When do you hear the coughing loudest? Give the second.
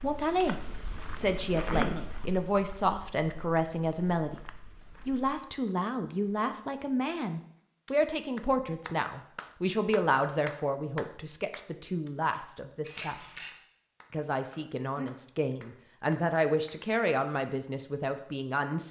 2 s.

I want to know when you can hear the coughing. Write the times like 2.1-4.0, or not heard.
1.5-2.0, 14.9-15.6.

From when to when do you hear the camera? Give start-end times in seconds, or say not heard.
12.8-13.5.